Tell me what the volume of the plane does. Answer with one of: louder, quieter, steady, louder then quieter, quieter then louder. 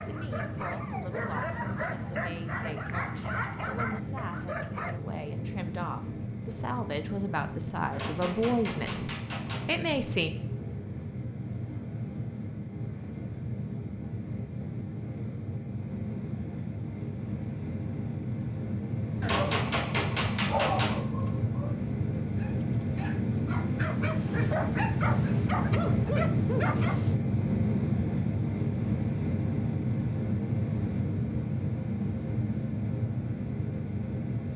louder.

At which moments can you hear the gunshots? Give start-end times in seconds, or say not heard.
7.9-9.7, 19.2-21.0.